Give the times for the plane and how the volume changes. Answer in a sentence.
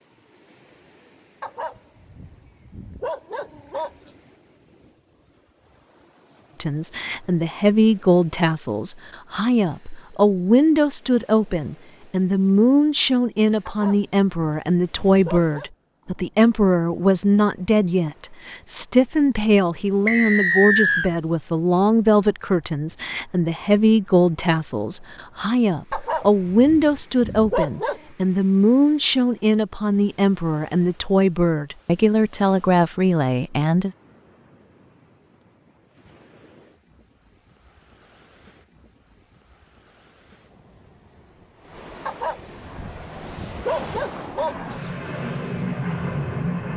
You can hear the plane from 42.5 to 46.7 s, getting louder.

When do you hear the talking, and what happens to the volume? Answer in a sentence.
The talking can be heard from 6.6 to 33.9 s, at a steady volume.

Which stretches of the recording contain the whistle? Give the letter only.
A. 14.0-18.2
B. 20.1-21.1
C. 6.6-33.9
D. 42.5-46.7
B.